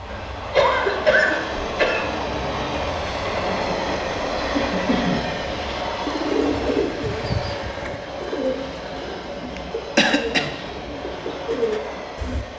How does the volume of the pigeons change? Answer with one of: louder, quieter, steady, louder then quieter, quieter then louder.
quieter then louder.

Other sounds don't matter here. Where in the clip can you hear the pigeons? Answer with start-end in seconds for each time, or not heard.
6.0-12.4.